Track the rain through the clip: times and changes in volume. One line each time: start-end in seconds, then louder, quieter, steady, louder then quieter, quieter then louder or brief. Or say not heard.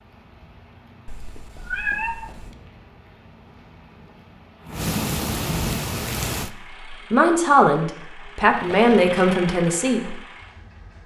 0.0-6.5 louder.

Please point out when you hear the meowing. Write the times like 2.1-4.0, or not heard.
1.1-2.5, 8.7-9.2.